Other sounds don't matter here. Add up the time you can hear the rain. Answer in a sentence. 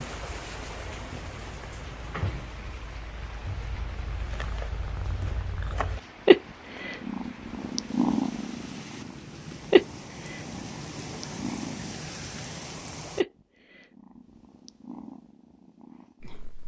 You can hear the rain for 13 seconds altogether.